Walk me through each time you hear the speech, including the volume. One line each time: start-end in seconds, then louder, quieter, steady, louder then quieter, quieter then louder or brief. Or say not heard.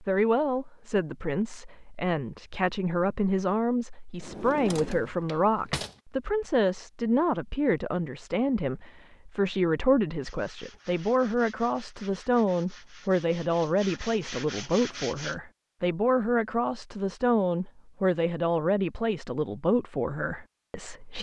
0.0-21.1 steady.